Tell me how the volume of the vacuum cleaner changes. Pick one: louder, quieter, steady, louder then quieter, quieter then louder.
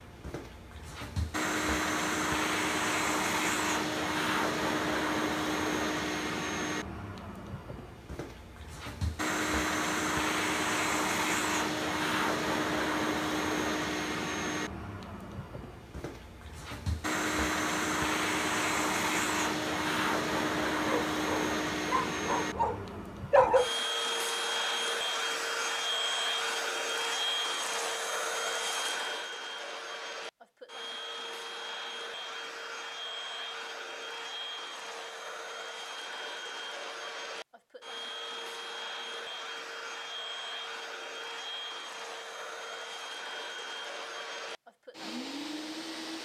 quieter.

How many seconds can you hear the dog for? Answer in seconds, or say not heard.
3 s.